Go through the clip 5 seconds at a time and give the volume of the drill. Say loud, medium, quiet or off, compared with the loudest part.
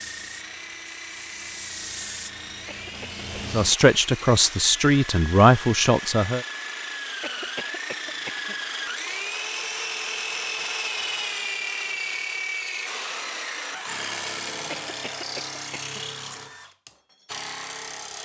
medium, loud, loud, medium.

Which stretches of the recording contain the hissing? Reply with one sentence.
You can hear the hissing from 0.0 to 3.8 s.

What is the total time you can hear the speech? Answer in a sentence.
The speech can be heard for 3 seconds in total.